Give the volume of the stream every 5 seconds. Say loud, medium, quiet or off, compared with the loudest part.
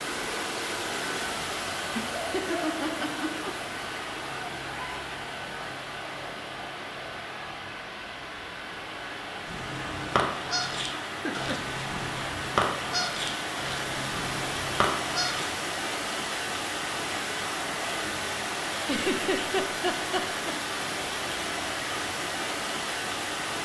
loud, medium, loud, loud, loud.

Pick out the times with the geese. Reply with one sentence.
You can hear the geese from 9.4 to 15.4 s.